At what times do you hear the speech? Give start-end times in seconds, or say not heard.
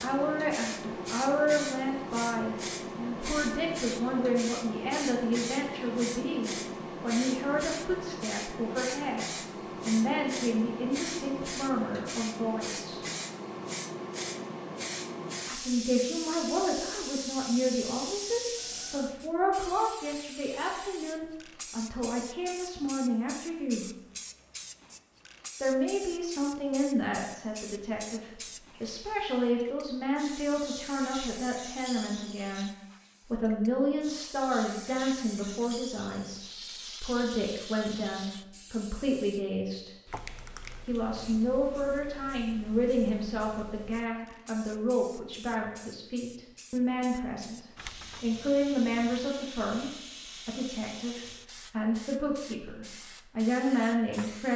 0.0-13.0, 15.4-23.9, 25.6-39.9, 40.9-54.5.